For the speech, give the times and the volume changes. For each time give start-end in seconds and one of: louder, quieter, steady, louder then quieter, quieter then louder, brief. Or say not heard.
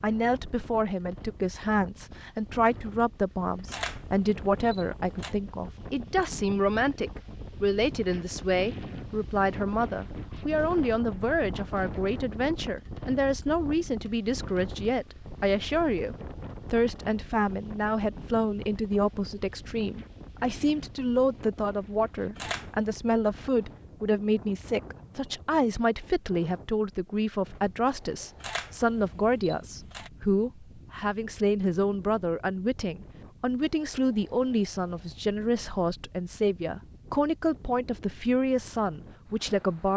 0.0-39.9 steady.